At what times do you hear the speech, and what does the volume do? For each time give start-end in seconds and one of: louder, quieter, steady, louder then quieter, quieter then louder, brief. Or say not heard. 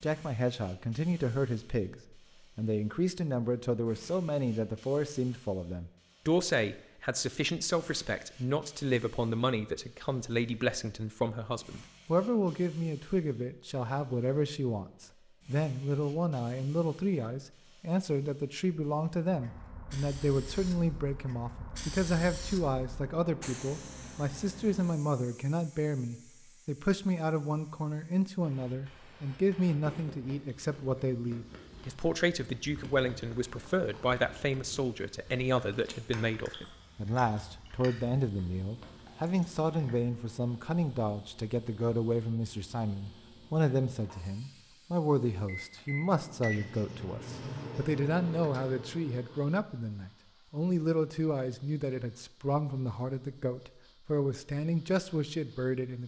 0.0-56.0 steady.